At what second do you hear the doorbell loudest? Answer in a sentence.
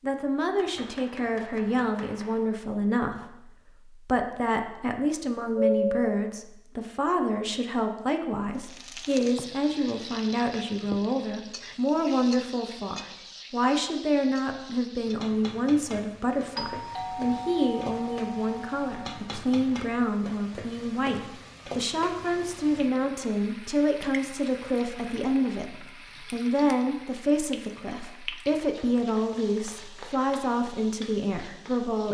The loudest moment of the doorbell is at 6 seconds.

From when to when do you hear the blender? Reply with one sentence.
The blender can't be heard in this clip.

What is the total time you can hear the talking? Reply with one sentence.
The talking can be heard for 32 seconds in total.